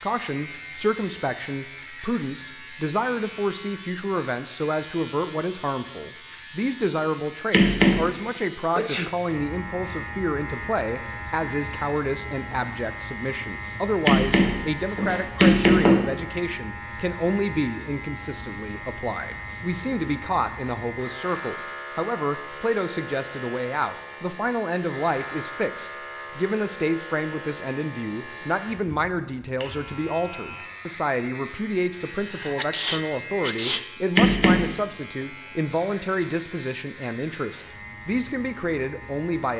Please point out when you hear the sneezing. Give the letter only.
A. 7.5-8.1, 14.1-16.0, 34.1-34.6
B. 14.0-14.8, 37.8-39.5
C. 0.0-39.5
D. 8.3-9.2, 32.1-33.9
D.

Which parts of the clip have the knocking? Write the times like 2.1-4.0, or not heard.
7.5-8.1, 14.1-16.0, 34.1-34.6.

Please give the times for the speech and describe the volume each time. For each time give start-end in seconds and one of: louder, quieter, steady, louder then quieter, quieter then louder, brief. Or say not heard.
0.0-39.5 steady.